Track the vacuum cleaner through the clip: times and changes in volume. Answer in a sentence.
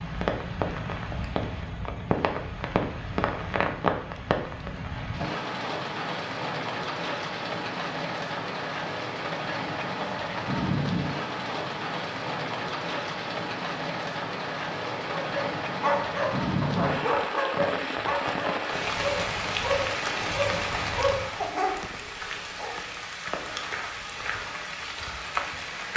The vacuum cleaner can't be heard in this clip.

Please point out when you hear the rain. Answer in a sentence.
You can hear the rain from 0.0 to 25.9 s.